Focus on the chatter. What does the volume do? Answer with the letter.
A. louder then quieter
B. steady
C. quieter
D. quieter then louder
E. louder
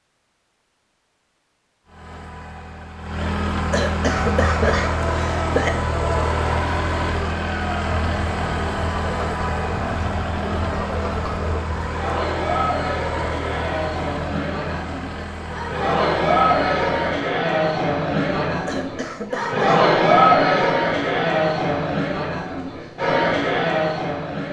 E.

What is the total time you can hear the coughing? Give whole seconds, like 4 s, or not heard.
3 s.